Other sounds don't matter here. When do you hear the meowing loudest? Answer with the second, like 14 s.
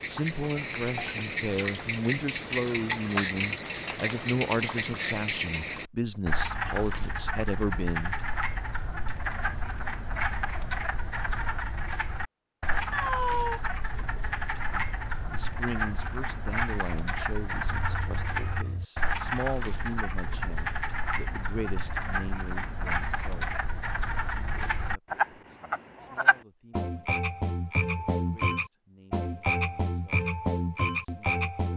13 s.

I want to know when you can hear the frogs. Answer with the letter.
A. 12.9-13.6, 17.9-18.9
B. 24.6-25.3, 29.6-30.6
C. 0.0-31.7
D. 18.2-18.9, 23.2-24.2
C.